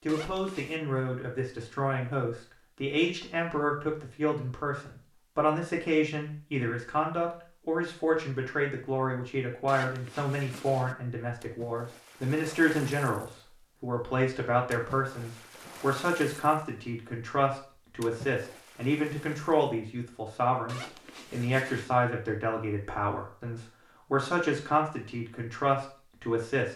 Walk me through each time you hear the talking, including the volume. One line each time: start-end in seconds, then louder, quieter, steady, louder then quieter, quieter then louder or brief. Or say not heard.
0.1-26.7 steady.